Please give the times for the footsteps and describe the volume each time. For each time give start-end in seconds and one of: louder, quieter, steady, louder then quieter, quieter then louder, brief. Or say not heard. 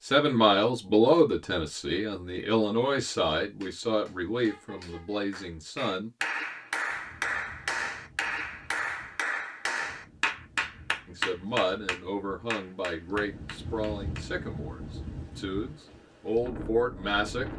not heard.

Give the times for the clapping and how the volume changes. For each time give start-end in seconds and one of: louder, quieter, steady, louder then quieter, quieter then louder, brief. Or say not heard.
3.6-14.2 louder then quieter.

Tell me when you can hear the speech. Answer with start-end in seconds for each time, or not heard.
0.0-6.1, 11.1-17.4.